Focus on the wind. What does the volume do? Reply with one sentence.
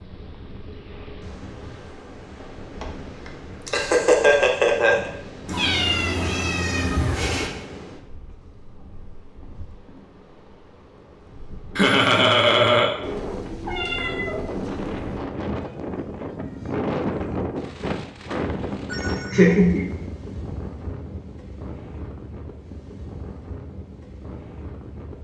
The loudness of the wind goes up, then down.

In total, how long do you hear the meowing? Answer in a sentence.
You can hear the meowing for 4 seconds altogether.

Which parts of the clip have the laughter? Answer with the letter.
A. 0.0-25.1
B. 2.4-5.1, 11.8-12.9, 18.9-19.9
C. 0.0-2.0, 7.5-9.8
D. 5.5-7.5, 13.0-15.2
B.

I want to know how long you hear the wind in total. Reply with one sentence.
The wind can be heard for 25 seconds in total.